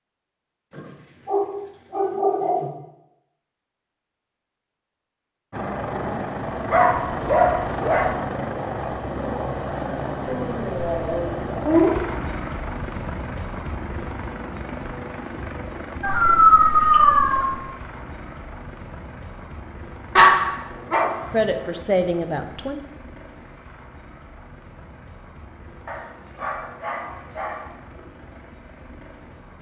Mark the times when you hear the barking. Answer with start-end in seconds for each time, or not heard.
0.8-2.7, 6.7-8.2, 10.2-11.9, 16.0-17.4, 20.1-21.7, 25.9-27.7.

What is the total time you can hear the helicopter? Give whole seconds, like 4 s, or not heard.
24 s.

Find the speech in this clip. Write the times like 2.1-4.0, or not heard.
21.3-22.8.